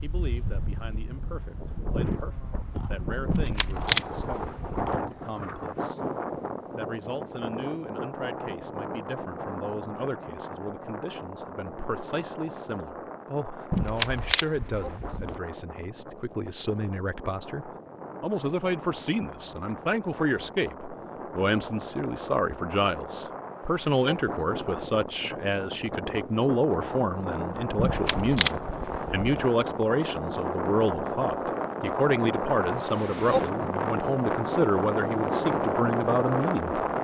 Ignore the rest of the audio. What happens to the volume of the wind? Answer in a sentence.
The loudness of the wind goes down, then up.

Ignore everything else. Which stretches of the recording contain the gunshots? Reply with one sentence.
The gunshots can be heard from 3.3 to 5.0 s, from 13.7 to 15.4 s and from 27.8 to 29.4 s.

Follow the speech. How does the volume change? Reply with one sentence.
The loudness of the speech goes up.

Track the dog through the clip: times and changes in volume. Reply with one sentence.
You can't hear the dog here.